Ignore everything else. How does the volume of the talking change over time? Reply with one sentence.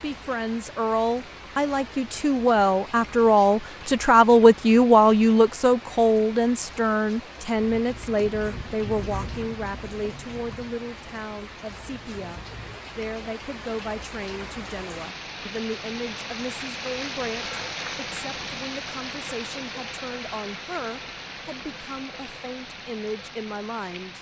The loudness of the talking goes down.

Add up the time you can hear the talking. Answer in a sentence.
You can hear the talking for 24 seconds altogether.